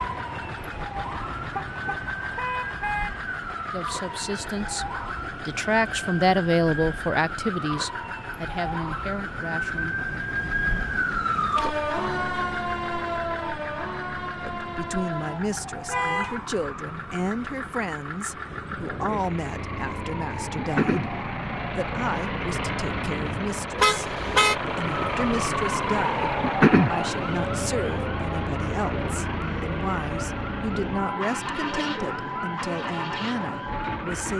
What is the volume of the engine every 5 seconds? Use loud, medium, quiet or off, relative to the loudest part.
medium, medium, medium, medium, loud, loud, loud.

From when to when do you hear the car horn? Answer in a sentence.
The car horn can be heard from 1.5 to 3.1 s, from 15.8 to 16.4 s and from 23.8 to 24.6 s.